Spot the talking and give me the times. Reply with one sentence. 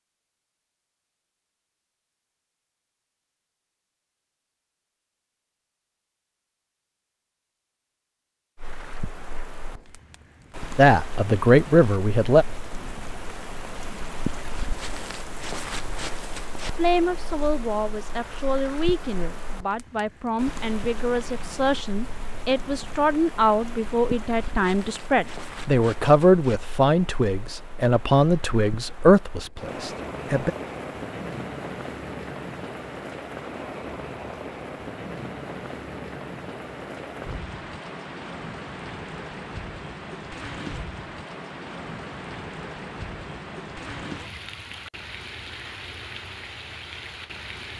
The talking can be heard from 10.8 to 12.4 s and from 16.8 to 30.5 s.